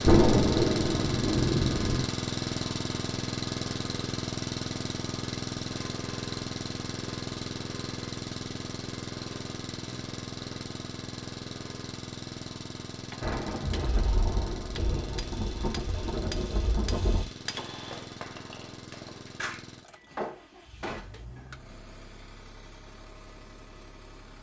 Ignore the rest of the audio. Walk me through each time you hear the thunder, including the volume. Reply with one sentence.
You can hear the thunder briefly from 0.1 to 2.0 s; and from 13.2 to 17.2 s, at a steady volume.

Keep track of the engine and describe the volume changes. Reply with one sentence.
The loudness of the engine goes down.